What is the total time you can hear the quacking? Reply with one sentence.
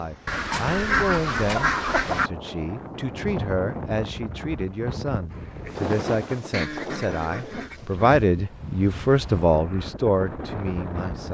The quacking can be heard for 4 seconds in total.